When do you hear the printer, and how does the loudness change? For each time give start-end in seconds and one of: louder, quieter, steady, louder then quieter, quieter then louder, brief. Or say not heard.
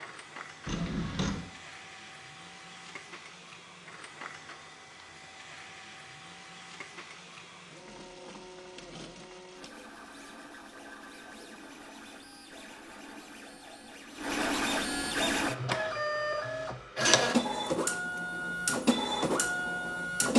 0.0-20.3 louder.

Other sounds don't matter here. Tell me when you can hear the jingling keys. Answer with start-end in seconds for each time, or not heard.
0.7-1.4.